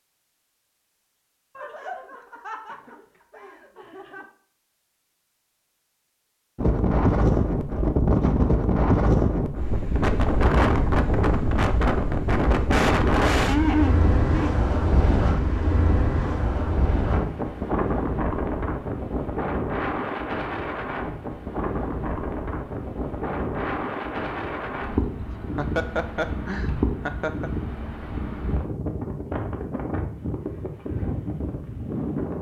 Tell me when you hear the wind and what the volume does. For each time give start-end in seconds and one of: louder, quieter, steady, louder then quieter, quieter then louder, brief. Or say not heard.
6.5-32.3 quieter.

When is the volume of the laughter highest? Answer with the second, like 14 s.
14 s.